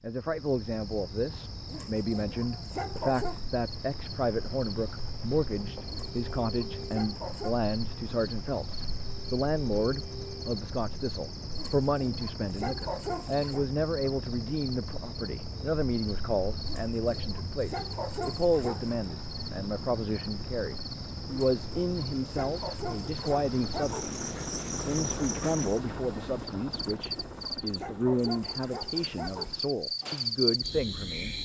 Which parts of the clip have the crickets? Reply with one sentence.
You can hear the crickets from 0.1 to 31.3 s.